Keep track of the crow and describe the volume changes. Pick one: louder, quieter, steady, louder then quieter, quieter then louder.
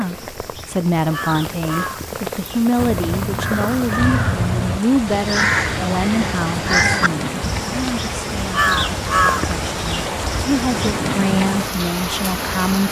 louder.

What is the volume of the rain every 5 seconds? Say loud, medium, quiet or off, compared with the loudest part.
medium, loud, loud.